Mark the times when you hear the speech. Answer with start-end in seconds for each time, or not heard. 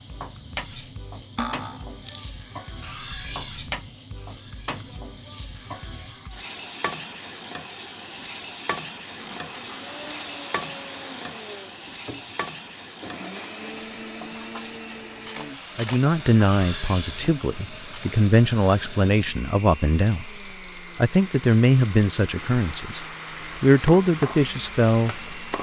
15.8-25.2.